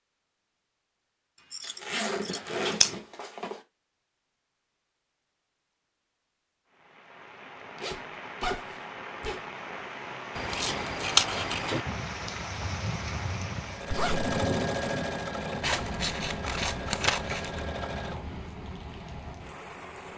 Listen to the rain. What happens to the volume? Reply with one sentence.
The loudness of the rain goes up, then down.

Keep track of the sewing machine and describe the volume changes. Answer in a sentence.
The loudness of the sewing machine goes down.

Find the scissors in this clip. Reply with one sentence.
The scissors can be heard from 1.5 to 3.0 s, from 10.3 to 11.8 s and from 15.6 to 17.6 s.